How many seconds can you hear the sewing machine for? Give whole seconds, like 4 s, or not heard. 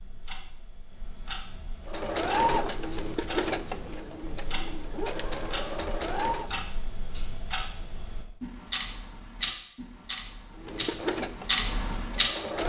7 s.